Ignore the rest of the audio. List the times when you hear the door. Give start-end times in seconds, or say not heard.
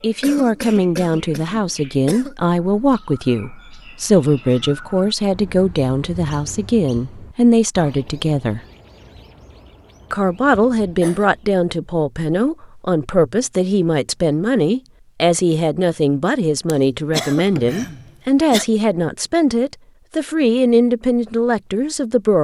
not heard.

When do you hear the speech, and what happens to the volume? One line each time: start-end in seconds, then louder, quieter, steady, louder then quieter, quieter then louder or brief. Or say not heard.
0.0-8.6 steady
10.1-22.3 steady.